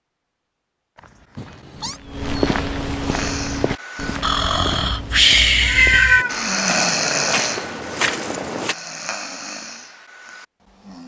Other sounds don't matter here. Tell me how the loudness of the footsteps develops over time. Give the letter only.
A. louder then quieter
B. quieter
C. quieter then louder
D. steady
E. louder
C.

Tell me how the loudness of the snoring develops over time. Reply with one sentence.
The loudness of the snoring goes up, then down.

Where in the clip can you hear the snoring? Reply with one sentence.
The snoring can be heard from 3.0 to 11.0 s.